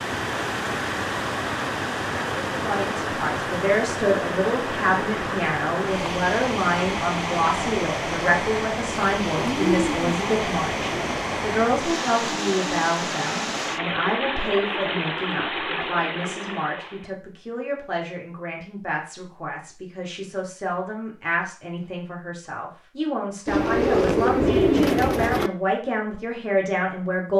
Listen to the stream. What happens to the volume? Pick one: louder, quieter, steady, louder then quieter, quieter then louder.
steady.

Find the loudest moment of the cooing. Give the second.
25 s.